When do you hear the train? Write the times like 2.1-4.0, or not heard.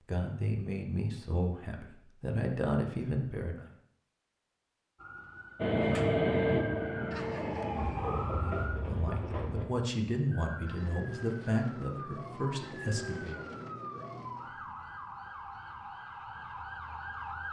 5.5-9.7.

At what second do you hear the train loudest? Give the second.
6 s.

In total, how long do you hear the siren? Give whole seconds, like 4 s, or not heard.
11 s.